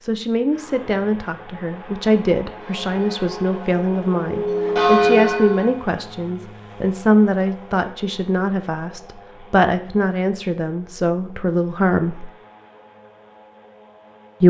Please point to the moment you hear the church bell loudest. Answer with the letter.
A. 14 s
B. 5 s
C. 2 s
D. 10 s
B.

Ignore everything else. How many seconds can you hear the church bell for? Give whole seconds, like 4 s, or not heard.
3 s.